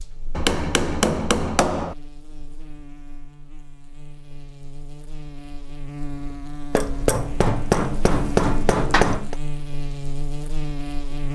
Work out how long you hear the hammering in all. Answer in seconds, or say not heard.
4 s.